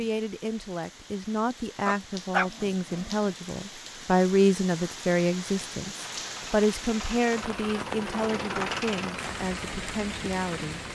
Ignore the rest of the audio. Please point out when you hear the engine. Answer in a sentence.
You can hear the engine from 6.0 to 10.9 s.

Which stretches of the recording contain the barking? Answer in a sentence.
The barking can be heard from 1.9 to 3.3 s.